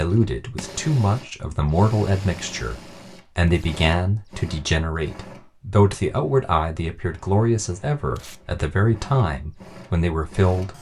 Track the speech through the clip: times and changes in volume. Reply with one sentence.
The speech can be heard from 0.0 to 10.7 s, at a steady volume.